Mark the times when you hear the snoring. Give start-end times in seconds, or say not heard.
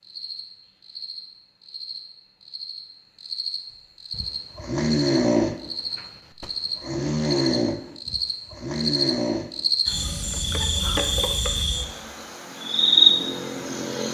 4.1-10.4.